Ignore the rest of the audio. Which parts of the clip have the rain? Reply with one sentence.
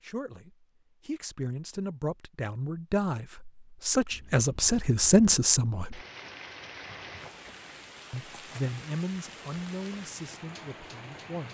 The rain can be heard from 4.1 to 11.5 s.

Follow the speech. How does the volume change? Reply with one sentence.
The volume of the speech goes up, then down.